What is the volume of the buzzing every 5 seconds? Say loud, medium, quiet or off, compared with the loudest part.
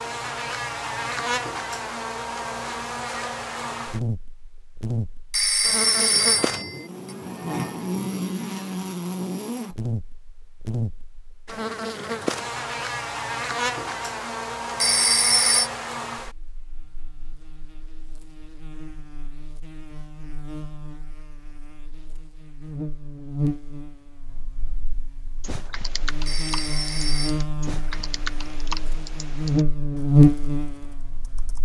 medium, medium, medium, quiet, quiet, medium, loud.